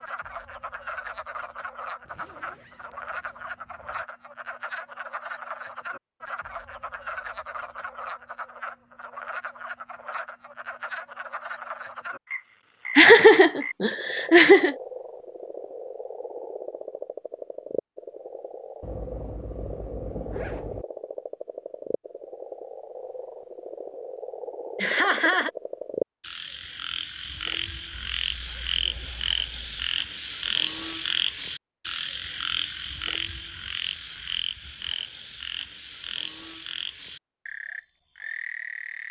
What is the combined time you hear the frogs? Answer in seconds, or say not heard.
39 s.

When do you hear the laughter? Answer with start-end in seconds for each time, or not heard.
12.9-14.8, 24.8-25.5.